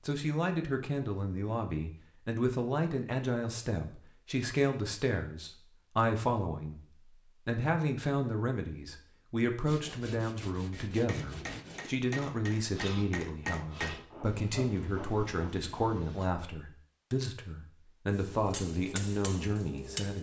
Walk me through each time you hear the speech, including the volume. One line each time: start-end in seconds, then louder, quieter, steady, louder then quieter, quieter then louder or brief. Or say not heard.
0.1-20.1 steady.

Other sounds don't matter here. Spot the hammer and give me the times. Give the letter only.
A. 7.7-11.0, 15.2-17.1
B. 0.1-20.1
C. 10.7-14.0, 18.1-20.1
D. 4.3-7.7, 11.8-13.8
C.